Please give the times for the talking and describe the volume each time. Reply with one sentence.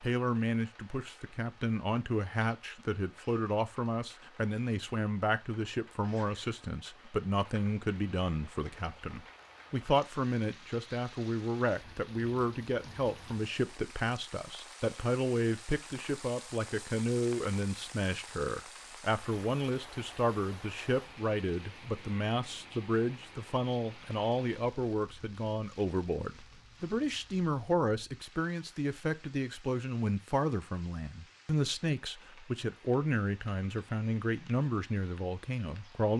The talking can be heard from 0.0 to 36.1 s, at a steady volume.